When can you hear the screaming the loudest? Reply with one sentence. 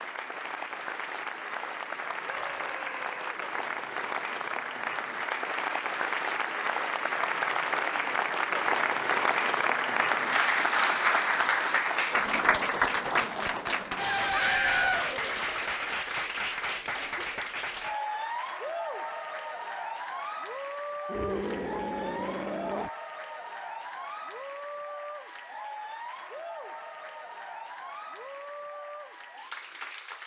The volume of the screaming peaks at 15 seconds.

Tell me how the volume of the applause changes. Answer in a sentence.
The loudness of the applause goes up, then down.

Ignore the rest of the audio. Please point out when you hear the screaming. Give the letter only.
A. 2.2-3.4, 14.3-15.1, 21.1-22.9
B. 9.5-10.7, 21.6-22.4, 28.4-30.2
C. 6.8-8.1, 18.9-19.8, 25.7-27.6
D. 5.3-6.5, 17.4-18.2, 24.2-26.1
A.